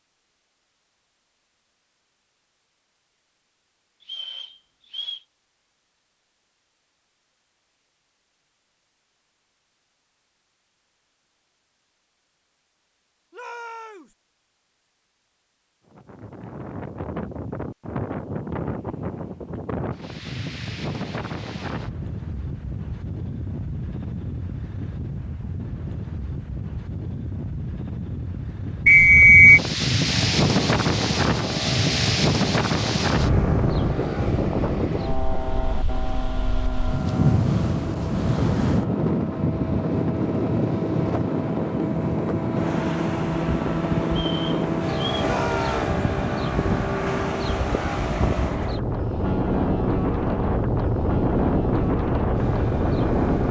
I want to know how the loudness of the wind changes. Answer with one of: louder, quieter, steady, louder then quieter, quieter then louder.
louder.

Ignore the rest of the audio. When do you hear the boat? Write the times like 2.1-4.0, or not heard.
30.1-53.4.